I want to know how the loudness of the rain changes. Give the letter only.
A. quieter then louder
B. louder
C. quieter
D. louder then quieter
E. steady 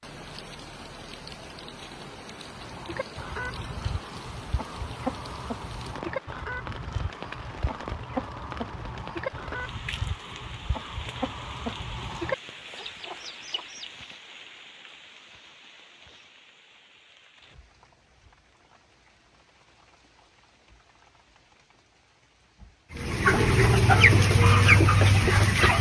C.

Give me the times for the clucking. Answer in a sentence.
The clucking can be heard from 2.5 to 13.9 s and from 22.9 to 25.7 s.